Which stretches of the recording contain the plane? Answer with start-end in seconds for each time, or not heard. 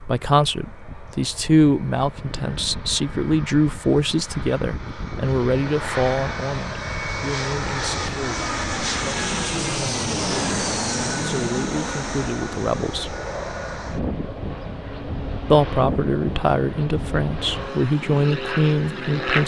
0.0-19.4.